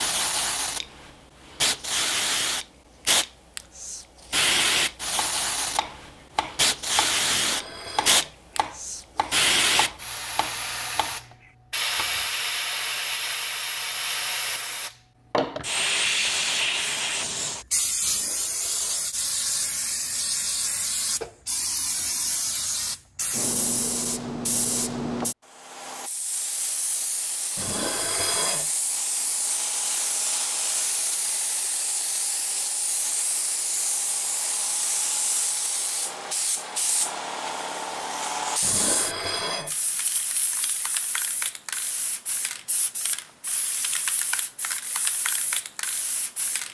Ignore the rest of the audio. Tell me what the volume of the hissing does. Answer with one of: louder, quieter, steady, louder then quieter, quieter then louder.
quieter.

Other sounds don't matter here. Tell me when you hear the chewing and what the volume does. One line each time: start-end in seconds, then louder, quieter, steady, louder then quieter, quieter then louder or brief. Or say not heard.
not heard.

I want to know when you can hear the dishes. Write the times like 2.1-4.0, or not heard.
7.2-8.3, 18.0-19.1, 27.6-28.7, 38.6-39.8.